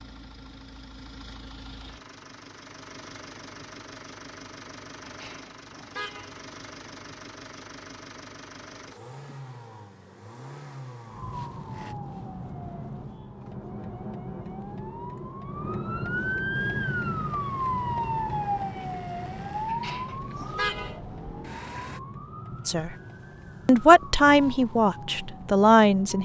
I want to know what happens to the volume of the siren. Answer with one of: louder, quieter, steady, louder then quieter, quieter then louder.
louder then quieter.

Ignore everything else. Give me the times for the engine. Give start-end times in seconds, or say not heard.
0.0-11.9, 16.5-22.0.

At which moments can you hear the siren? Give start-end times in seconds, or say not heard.
11.1-26.2.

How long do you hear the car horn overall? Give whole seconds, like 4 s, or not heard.
3 s.